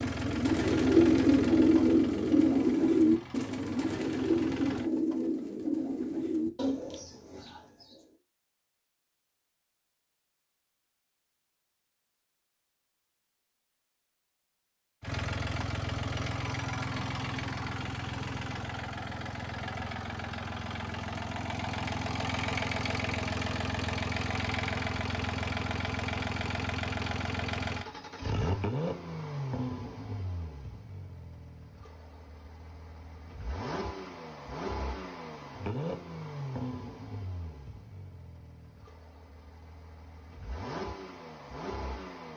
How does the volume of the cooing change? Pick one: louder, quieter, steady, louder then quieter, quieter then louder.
quieter.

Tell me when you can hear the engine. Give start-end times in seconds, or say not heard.
0.0-4.8, 15.0-42.3.